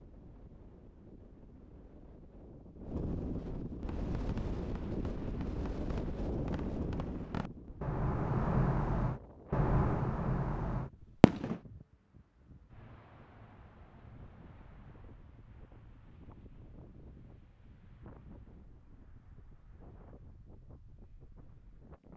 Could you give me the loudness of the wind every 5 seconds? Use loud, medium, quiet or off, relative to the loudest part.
loud, loud, quiet, quiet, quiet.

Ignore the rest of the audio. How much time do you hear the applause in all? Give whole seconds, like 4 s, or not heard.
not heard.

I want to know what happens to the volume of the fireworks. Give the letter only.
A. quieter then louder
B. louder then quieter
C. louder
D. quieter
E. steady
C.